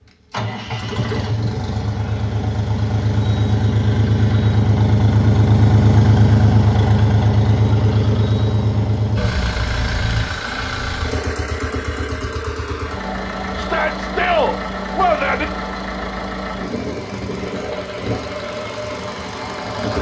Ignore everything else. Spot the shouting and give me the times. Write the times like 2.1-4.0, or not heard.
13.6-15.4.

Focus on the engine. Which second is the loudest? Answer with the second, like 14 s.
6 s.